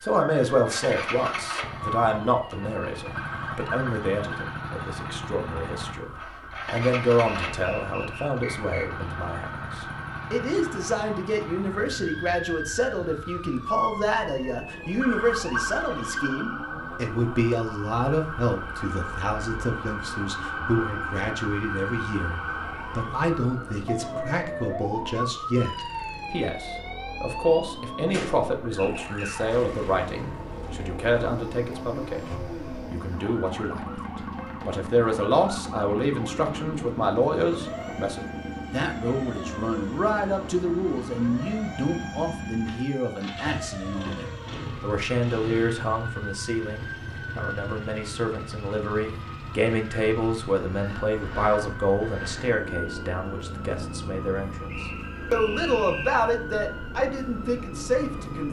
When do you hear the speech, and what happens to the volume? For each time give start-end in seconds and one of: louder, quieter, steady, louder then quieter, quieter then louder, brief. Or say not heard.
0.0-58.4 steady.